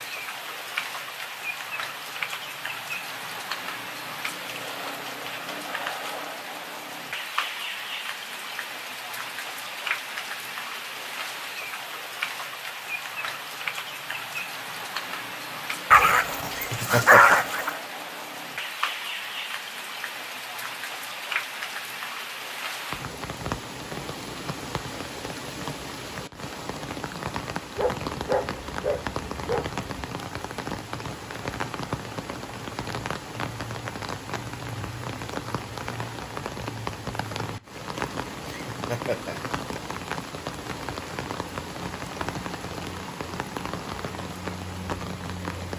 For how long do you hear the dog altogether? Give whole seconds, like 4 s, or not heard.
4 s.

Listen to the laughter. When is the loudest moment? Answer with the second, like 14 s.
17 s.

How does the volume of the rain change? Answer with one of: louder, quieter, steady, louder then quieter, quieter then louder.
steady.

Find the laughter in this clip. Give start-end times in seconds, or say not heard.
16.5-17.4, 38.5-39.4.